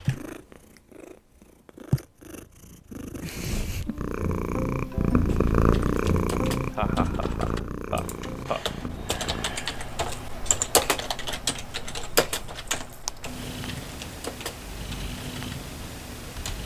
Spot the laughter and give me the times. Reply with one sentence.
The laughter can be heard from 6.7 to 8.7 s.